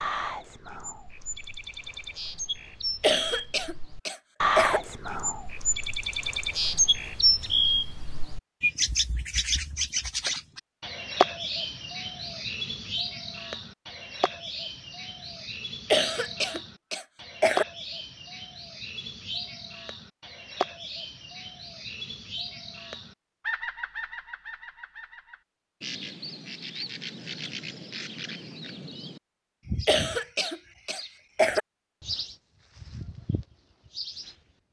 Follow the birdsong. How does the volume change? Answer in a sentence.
The volume of the birdsong goes down.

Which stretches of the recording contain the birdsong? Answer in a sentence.
The birdsong can be heard from 0.0 to 34.4 s.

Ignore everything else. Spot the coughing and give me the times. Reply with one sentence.
The coughing can be heard from 3.0 to 4.8 s, from 15.9 to 17.6 s and from 29.9 to 31.6 s.